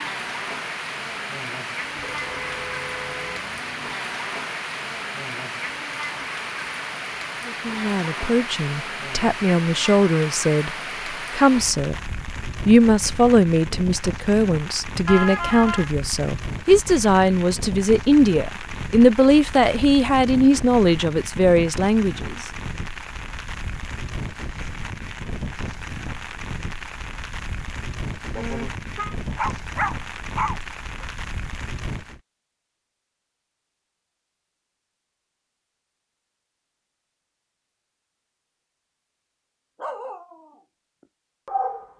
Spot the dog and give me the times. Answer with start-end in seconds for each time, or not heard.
29.2-31.1, 39.8-40.6, 41.5-41.9.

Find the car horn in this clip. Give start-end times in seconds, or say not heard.
1.9-4.0, 15.1-15.9, 28.3-29.1.